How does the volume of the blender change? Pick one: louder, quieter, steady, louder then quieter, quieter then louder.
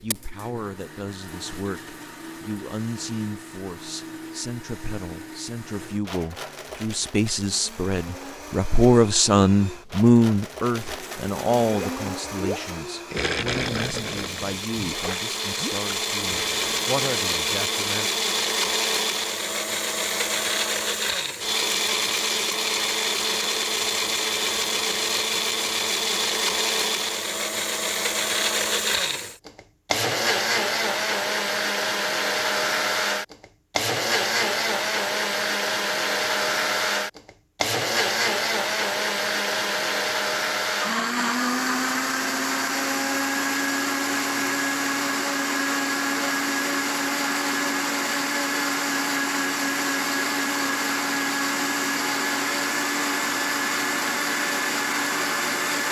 louder.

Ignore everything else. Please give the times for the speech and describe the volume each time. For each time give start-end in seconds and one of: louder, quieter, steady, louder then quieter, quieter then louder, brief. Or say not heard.
0.0-18.1 louder then quieter.